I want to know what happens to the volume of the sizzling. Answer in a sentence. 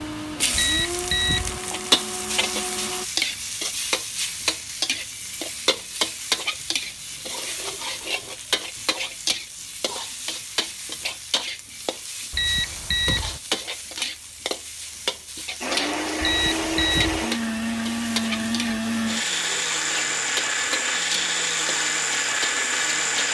The loudness of the sizzling goes down.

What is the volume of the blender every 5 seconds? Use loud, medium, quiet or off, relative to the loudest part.
medium, off, off, loud, loud.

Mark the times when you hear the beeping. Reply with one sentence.
You can hear the beeping from 0.5 to 1.6 s, from 12.3 to 13.4 s and from 16.2 to 17.2 s.